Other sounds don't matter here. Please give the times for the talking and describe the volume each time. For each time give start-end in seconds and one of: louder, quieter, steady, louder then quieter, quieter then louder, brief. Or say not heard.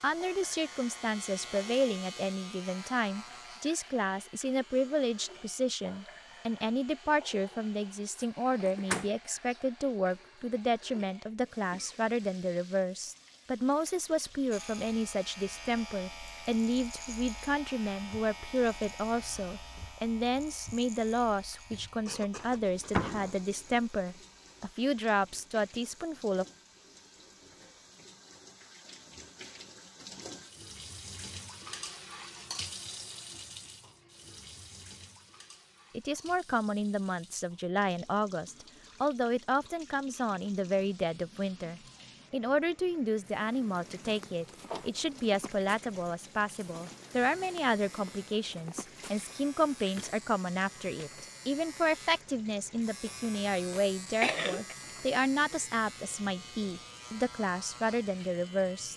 0.0-26.4 steady
35.9-58.9 steady.